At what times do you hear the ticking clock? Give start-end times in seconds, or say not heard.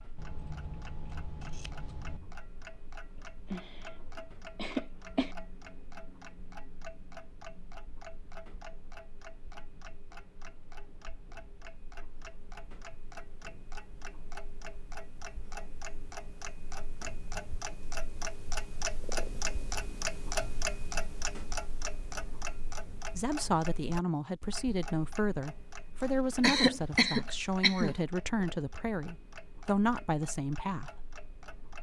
0.0-31.7.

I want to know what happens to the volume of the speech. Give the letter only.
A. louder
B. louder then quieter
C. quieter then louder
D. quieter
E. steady
E.